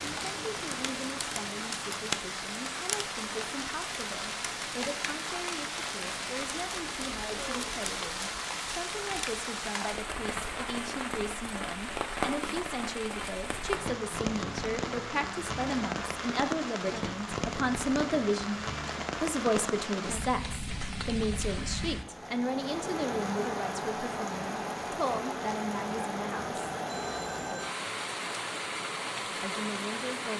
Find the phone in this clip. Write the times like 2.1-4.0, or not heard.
26.9-27.8.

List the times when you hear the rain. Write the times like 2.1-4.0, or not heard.
0.0-30.3.